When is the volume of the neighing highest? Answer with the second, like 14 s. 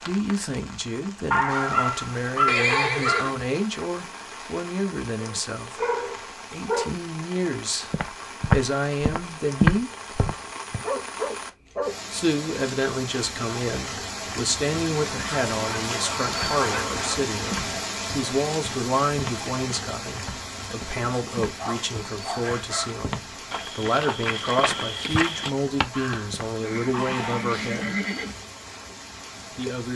3 s.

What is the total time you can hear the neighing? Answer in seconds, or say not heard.
3 s.